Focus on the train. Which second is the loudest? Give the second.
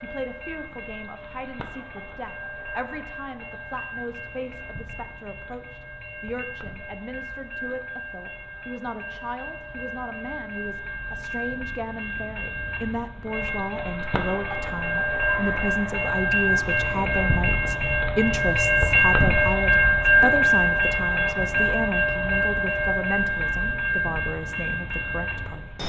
20 s.